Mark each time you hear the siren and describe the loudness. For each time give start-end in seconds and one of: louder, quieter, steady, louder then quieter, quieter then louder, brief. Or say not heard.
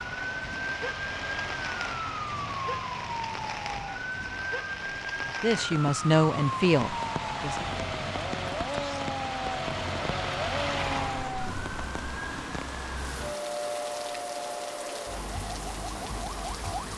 0.0-16.9 steady.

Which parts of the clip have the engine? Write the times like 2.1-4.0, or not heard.
0.0-11.5.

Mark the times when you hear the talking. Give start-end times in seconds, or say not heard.
5.4-7.7.